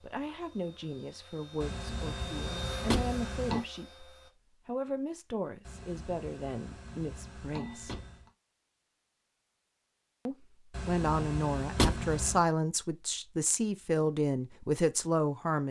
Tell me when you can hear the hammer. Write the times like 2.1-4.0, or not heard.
1.6-3.6, 5.6-8.3, 10.7-12.4.